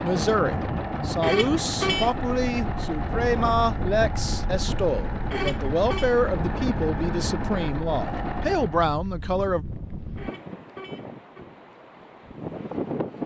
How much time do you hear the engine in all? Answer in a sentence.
The engine can be heard for 9 seconds in total.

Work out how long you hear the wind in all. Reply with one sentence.
The wind can be heard for 13 seconds in total.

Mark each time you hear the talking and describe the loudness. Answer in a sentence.
The talking can be heard from 0.0 to 9.7 s, at a steady volume.